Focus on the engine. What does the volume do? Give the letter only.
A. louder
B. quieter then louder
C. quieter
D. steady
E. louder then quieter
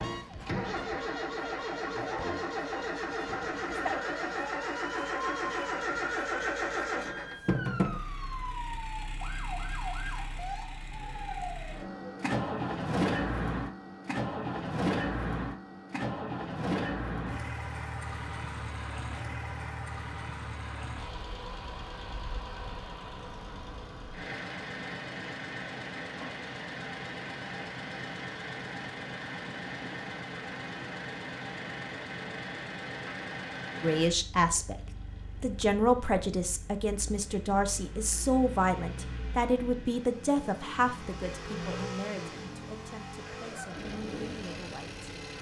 C.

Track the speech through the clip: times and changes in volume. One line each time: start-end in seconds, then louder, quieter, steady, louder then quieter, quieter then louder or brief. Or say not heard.
33.8-34.8 brief
35.4-45.0 quieter.